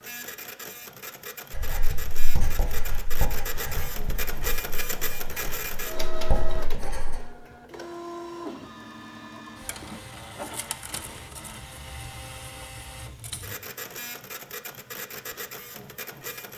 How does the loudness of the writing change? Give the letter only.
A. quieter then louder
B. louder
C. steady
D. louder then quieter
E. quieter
A.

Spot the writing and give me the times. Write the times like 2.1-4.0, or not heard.
1.5-7.2.